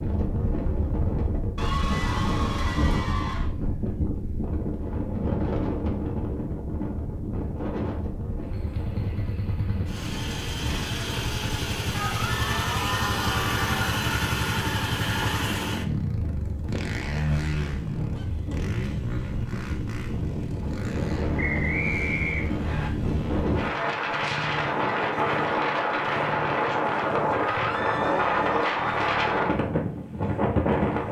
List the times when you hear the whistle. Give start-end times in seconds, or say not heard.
21.4-22.9.